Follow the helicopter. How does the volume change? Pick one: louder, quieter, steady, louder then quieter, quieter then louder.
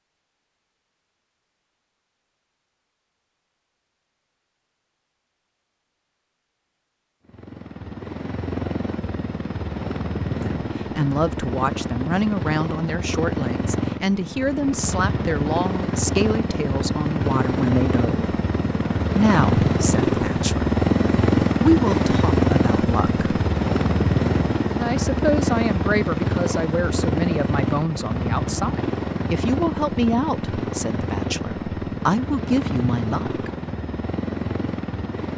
louder then quieter.